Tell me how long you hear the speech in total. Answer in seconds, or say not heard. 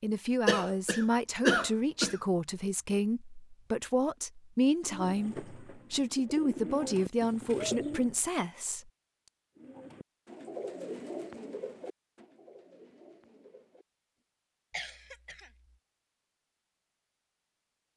9 s.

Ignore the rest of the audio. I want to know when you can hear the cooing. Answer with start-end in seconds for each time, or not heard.
4.8-8.2, 9.6-13.8.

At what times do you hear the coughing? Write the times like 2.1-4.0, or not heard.
0.5-2.2, 14.7-15.6.